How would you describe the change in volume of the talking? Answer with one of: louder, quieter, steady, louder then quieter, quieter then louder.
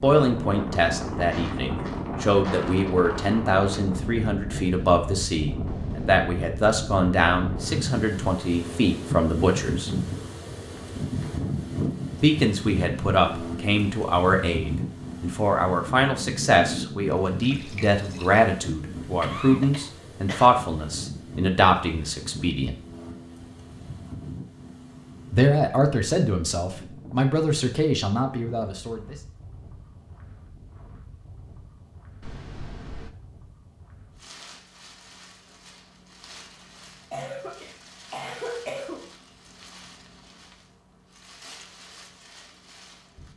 steady.